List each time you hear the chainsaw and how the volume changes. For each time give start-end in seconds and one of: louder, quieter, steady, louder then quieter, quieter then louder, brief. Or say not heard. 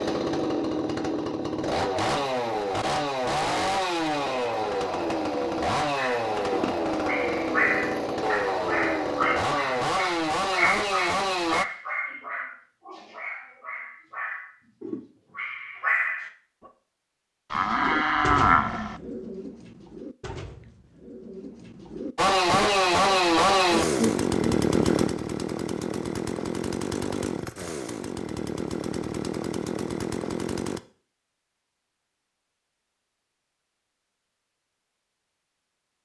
0.0-11.7 steady
22.1-30.8 quieter.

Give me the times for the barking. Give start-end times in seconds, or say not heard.
6.0-16.3.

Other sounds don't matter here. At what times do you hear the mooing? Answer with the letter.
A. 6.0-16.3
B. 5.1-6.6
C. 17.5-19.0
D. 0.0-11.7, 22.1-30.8
C.